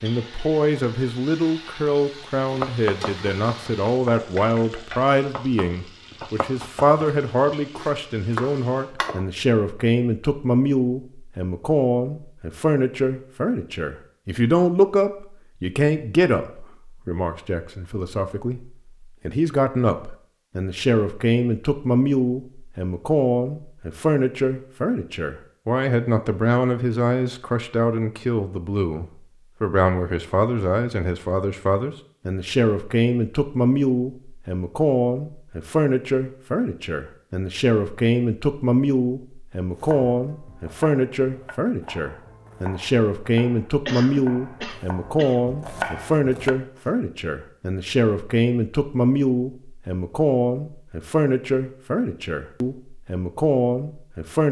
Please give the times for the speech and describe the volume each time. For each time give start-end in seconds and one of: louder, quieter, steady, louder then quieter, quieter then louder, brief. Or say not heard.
0.0-54.4 steady.